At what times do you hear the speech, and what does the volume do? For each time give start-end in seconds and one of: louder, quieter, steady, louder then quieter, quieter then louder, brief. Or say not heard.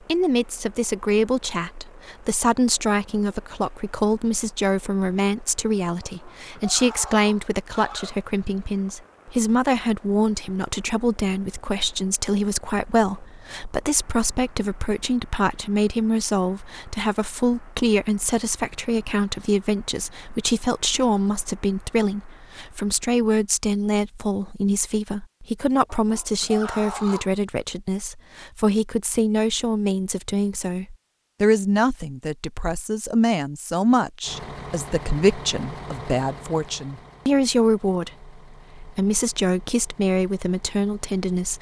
0.1-41.5 steady.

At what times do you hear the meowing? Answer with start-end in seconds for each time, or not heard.
not heard.